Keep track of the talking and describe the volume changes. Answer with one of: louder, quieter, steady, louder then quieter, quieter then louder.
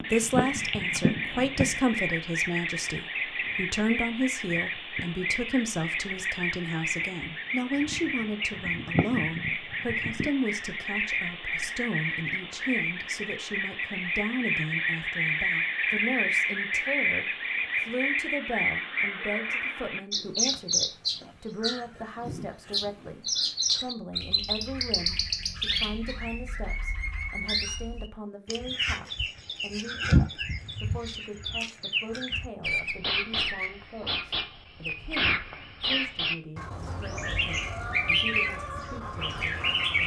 quieter.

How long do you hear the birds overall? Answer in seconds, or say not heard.
40 s.